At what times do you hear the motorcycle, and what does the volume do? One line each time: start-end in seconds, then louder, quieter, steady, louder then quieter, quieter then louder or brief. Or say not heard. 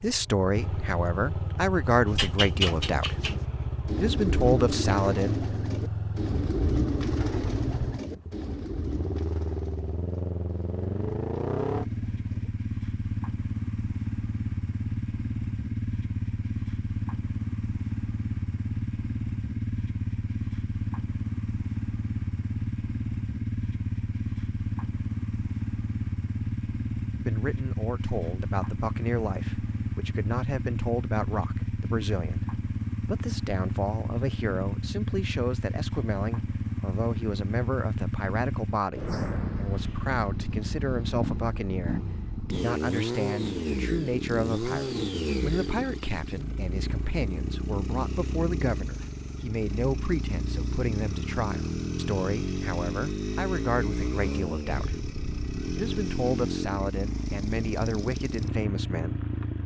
0.0-59.6 steady.